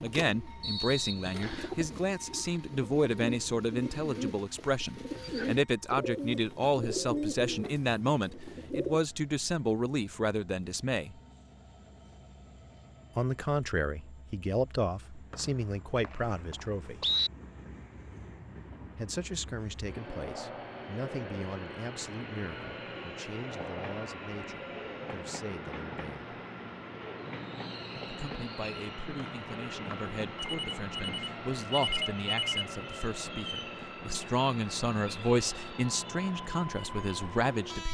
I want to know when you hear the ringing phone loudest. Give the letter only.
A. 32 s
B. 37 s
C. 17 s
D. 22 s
A.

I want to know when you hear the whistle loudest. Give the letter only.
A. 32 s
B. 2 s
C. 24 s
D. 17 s
D.